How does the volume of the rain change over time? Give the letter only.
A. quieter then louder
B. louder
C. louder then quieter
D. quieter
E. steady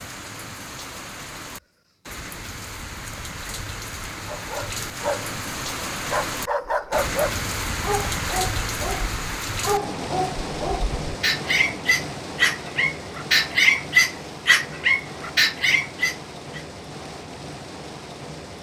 C.